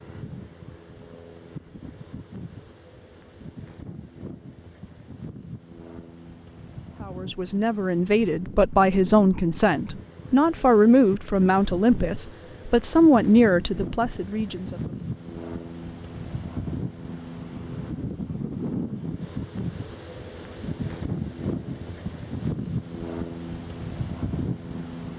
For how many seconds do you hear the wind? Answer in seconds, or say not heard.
25 s.